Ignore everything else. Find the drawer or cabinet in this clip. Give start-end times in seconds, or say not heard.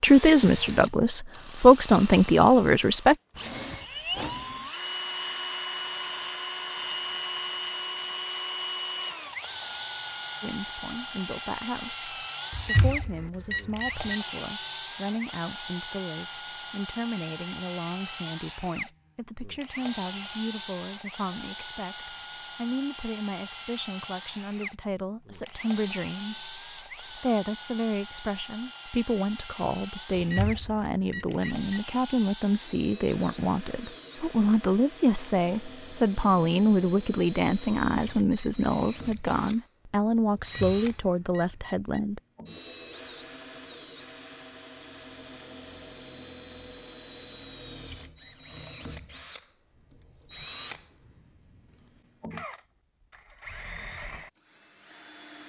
3.3-4.7.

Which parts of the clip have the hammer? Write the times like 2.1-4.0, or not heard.
not heard.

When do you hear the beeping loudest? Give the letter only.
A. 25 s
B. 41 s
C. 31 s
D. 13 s
D.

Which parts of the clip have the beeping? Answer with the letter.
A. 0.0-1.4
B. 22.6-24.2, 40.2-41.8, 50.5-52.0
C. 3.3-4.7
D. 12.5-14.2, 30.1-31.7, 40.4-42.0
D.